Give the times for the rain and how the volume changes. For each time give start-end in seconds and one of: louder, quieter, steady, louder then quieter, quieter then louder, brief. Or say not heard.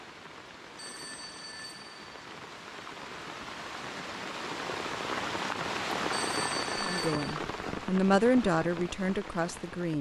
0.0-9.9 louder then quieter.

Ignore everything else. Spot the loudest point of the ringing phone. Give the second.
7 s.